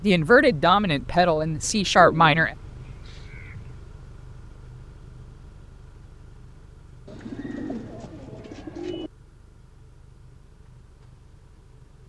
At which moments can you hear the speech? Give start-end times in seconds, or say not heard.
0.0-2.5.